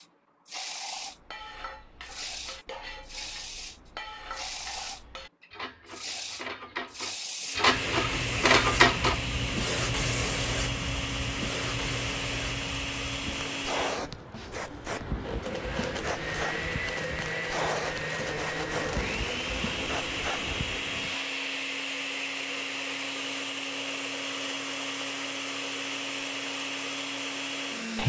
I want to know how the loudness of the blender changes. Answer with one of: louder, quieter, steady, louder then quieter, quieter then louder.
steady.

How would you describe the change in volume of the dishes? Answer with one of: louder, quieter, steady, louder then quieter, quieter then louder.
louder.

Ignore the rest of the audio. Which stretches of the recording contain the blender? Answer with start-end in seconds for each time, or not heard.
7.5-28.0.